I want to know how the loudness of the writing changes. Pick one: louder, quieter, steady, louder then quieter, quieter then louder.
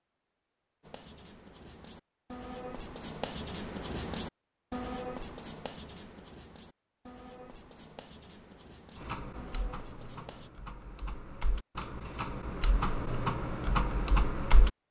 louder then quieter.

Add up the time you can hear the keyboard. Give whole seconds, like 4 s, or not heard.
6 s.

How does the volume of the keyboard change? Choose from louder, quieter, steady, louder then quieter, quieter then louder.
louder.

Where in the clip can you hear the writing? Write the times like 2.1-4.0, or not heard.
0.8-10.5.